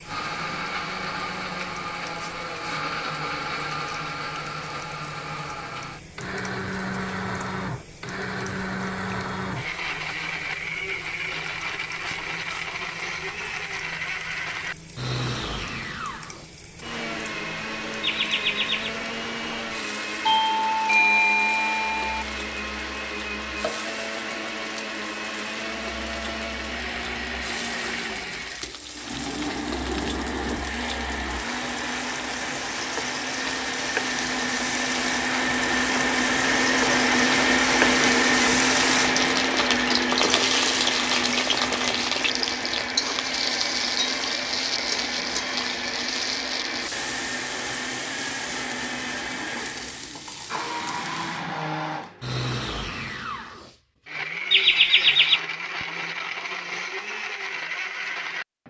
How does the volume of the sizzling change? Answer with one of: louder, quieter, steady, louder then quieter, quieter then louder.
louder.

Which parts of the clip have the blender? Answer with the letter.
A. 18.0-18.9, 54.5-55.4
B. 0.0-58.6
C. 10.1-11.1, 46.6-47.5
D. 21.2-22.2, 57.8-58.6
B.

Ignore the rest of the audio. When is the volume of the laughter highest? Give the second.
55 s.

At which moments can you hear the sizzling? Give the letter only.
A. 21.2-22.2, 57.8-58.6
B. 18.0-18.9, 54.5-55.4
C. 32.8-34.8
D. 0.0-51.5
D.